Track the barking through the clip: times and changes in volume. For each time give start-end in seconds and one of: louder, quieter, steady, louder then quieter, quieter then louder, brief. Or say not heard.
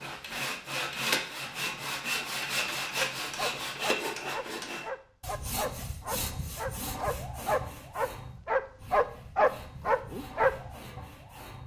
3.0-10.6 louder.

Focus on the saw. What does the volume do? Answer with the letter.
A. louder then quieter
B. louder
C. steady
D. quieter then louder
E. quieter
E.